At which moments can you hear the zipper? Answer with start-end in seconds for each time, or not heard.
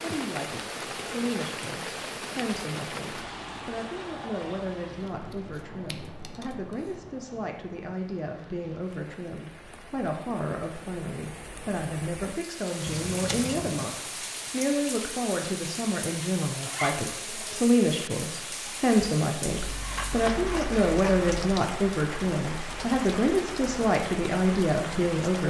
16.6-17.1.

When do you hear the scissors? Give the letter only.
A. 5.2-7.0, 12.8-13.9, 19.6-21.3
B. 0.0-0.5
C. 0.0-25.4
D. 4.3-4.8
A.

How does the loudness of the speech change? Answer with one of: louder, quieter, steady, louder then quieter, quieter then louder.
louder.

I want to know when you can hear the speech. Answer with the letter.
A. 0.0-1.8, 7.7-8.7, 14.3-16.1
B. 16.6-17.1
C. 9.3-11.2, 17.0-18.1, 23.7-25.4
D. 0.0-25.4
D.